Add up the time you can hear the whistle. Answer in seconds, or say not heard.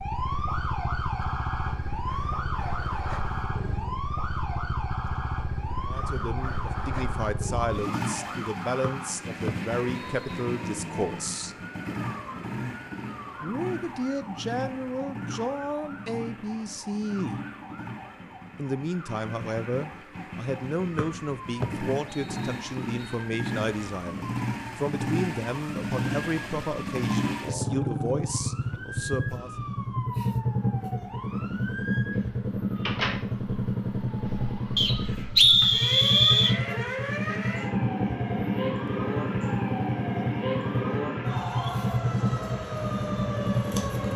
6 s.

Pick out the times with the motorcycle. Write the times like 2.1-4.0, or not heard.
0.0-44.1.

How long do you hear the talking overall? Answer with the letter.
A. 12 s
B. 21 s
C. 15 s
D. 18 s
B.